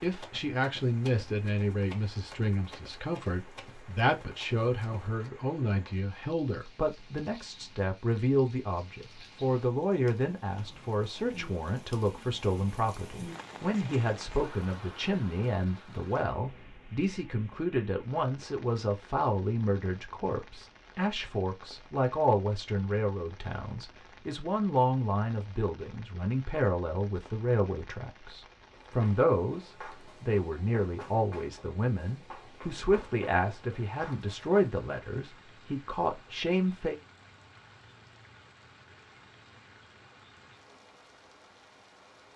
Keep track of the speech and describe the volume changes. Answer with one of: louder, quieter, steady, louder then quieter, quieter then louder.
steady.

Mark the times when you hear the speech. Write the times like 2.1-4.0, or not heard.
0.0-37.0.